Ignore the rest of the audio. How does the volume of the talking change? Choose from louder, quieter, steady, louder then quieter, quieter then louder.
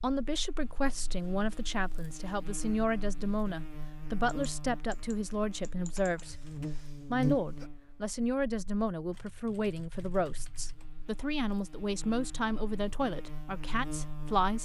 steady.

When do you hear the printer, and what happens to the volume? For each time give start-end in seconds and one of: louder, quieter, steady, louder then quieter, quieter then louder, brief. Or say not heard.
not heard.